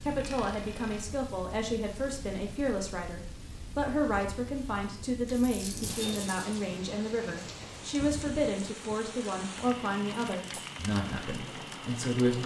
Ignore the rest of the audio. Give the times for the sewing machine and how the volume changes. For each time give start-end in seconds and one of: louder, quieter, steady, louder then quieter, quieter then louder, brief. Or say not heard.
not heard.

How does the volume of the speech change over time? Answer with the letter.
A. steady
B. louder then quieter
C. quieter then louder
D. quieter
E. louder
A.